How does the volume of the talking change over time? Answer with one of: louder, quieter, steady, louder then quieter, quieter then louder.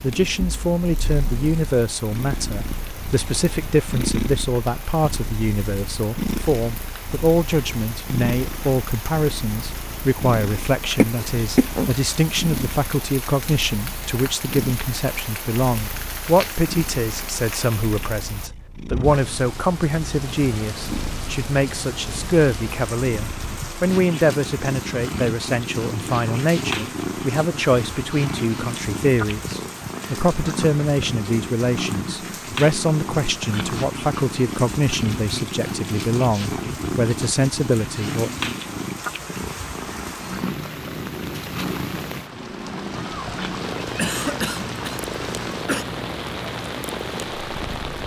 steady.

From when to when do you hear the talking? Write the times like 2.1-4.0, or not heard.
0.0-38.3.